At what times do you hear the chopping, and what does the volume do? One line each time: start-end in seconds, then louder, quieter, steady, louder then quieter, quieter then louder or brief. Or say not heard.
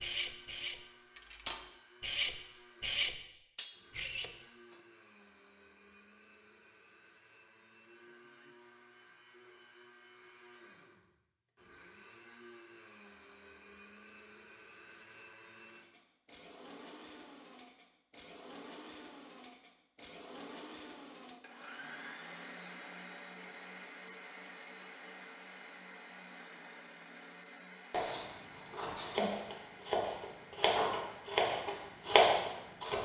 27.9-33.0 louder.